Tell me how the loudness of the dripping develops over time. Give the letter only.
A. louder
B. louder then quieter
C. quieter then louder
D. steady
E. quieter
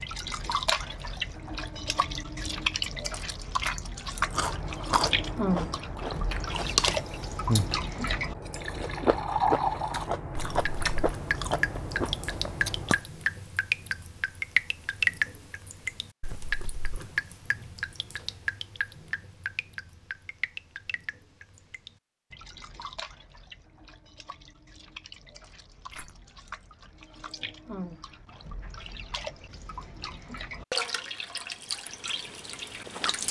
C.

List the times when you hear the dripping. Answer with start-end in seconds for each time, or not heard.
0.0-33.2.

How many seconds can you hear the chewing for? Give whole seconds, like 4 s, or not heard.
9 s.